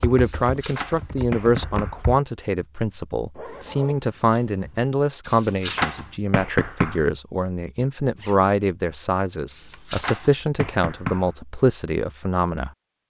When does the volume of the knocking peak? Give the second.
6 s.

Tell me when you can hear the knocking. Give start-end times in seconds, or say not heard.
0.2-2.0, 5.2-7.0, 9.5-11.3.